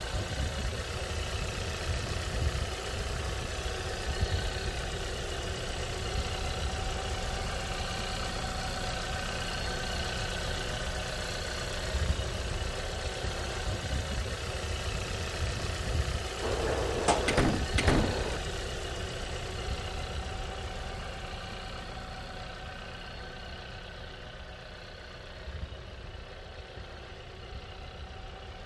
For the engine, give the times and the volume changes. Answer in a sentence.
The engine can be heard from 0.0 to 28.6 s, getting quieter.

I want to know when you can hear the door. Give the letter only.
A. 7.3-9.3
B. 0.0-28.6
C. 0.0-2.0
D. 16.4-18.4
D.